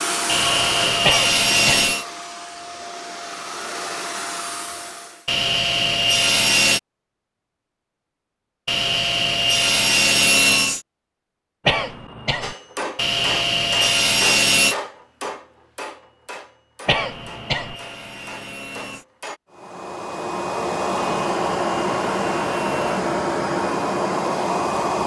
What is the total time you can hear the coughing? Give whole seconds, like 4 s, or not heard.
3 s.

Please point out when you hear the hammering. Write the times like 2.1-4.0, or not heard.
12.4-19.4.